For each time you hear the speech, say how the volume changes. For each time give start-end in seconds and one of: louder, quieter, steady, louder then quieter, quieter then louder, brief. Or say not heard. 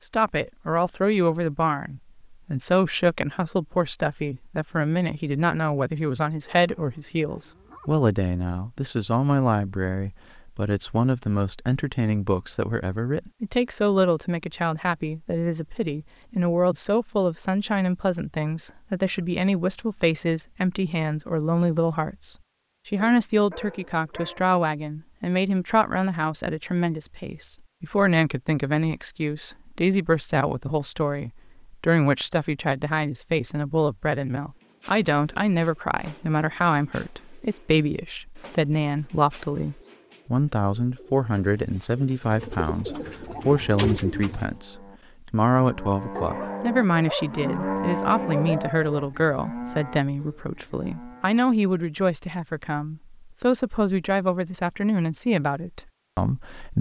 0.0-56.7 steady.